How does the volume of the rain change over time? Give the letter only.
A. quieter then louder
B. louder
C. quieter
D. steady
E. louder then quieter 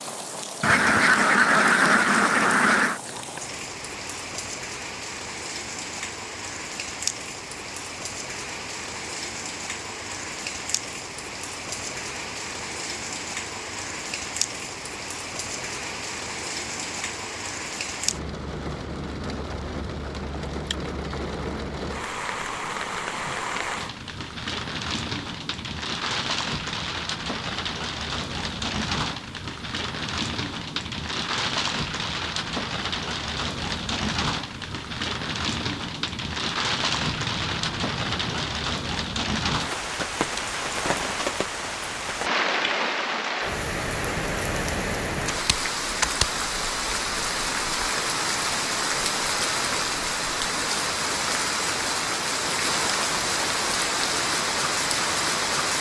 B.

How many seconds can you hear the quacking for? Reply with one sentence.
The quacking can be heard for 4 seconds in total.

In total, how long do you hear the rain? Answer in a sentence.
You can hear the rain for 56 seconds altogether.